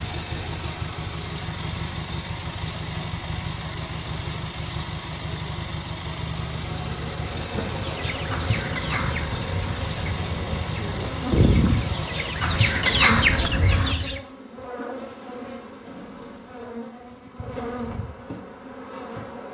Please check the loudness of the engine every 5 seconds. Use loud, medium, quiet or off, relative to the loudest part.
loud, loud, loud, off.